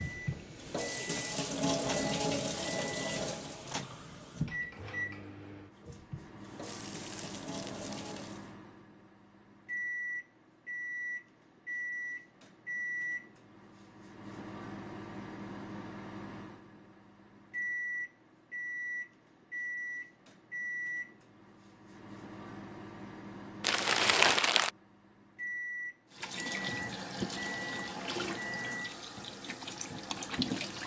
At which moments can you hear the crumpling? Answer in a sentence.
You can hear the crumpling from 6.7 to 8.3 s and from 23.6 to 24.7 s.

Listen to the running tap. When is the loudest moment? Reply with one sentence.
The loudest moment of the running tap is at 2 seconds.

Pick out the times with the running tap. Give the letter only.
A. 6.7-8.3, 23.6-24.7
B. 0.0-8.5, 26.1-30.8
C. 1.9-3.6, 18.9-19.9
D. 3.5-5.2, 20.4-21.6
B.